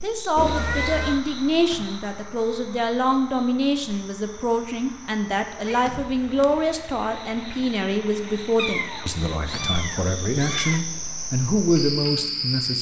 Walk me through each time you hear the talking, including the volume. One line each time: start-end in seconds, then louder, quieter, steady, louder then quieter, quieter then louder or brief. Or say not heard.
0.0-12.7 steady.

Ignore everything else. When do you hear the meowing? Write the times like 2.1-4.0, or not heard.
0.3-1.2, 5.7-6.7, 8.6-10.8.